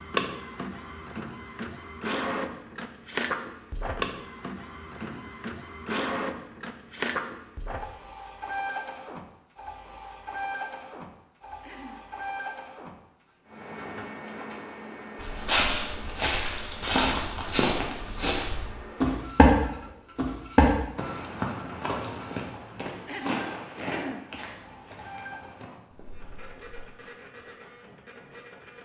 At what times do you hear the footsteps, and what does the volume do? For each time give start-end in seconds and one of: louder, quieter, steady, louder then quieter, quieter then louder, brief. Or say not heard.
15.2-26.9 quieter.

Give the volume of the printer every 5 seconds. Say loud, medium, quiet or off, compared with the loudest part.
loud, loud, medium, medium, quiet, quiet.